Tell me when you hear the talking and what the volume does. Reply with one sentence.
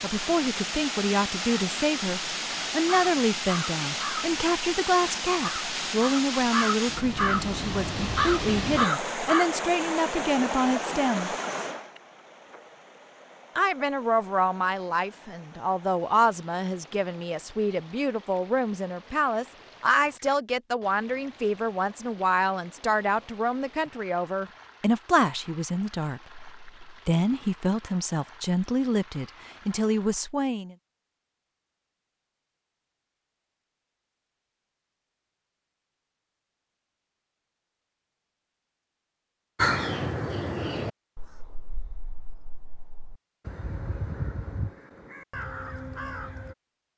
The talking can be heard from 0.0 to 11.3 s, at a steady volume; and from 13.6 to 30.8 s, at a steady volume.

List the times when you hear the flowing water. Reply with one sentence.
You can hear the flowing water from 0.0 to 30.2 s.